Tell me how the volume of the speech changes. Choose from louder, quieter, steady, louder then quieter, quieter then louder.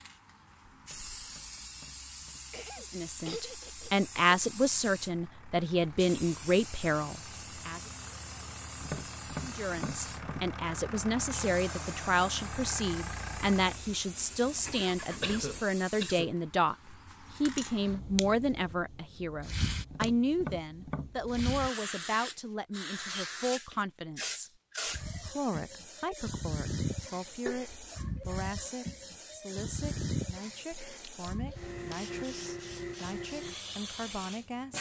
quieter.